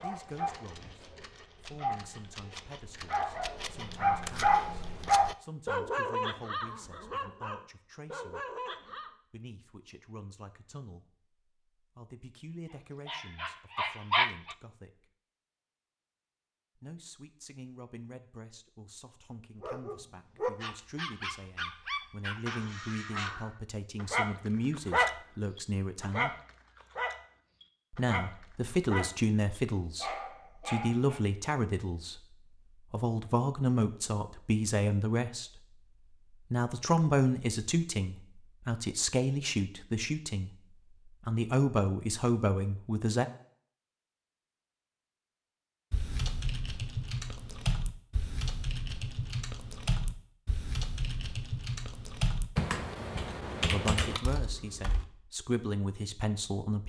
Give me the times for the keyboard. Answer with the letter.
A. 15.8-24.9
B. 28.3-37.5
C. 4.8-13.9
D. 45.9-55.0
D.